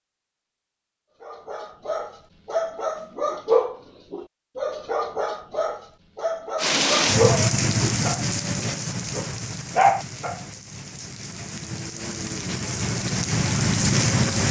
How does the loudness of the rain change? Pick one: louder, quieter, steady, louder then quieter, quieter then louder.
quieter then louder.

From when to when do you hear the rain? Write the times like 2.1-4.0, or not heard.
6.5-14.4.